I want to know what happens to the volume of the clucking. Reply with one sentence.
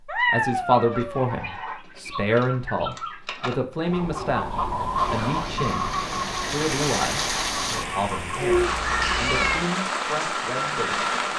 The volume of the clucking goes up, then down.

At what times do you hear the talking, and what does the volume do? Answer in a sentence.
The talking can be heard from 0.1 to 11.1 s, getting quieter.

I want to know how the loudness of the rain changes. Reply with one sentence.
The loudness of the rain goes up.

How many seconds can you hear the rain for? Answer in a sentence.
You can hear the rain for 6 seconds altogether.